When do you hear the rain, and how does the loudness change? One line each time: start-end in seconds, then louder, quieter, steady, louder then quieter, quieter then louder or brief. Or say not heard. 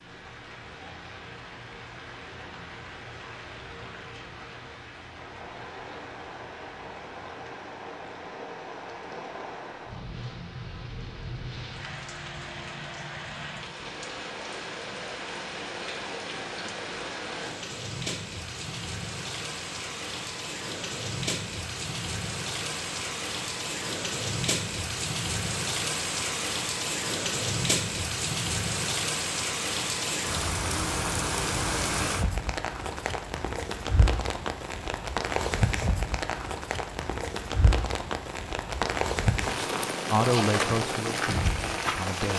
0.0-42.3 louder.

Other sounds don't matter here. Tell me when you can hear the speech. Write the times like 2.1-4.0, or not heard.
40.1-42.3.